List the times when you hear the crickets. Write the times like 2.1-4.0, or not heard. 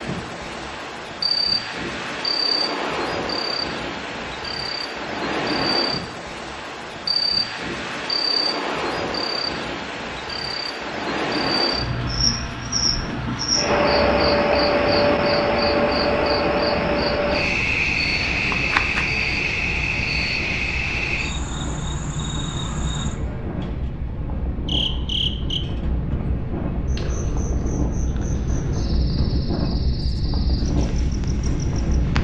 0.0-32.2.